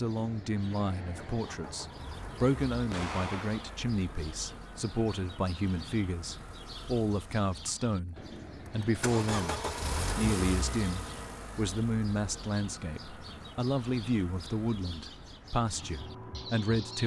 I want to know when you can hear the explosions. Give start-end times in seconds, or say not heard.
2.9-3.9.